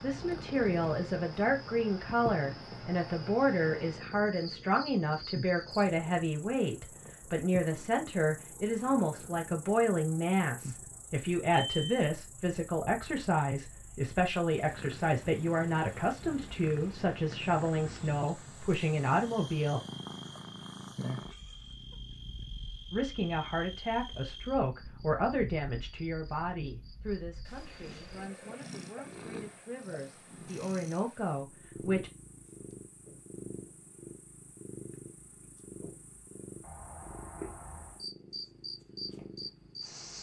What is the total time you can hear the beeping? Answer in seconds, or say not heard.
2 s.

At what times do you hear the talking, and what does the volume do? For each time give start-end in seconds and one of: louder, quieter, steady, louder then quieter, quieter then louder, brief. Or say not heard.
0.0-19.8 steady
22.9-32.1 quieter then louder.